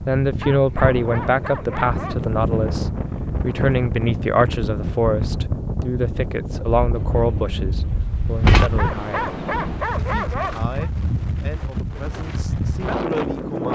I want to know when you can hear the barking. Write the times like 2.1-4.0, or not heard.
0.4-2.2, 8.8-10.9.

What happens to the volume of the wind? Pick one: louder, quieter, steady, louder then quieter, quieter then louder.
steady.